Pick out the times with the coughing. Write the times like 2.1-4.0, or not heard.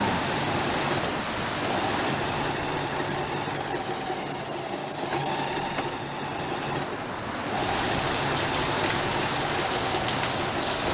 not heard.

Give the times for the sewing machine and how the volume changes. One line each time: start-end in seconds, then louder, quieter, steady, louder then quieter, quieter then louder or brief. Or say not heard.
0.0-10.8 steady.